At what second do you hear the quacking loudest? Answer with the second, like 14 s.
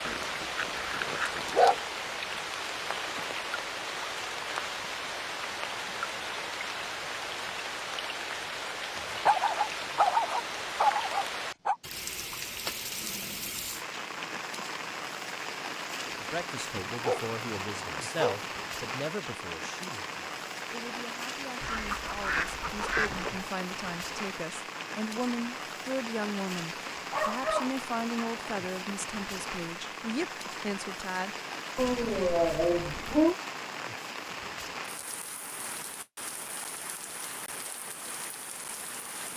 23 s.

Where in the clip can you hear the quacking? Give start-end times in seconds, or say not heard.
21.6-23.5.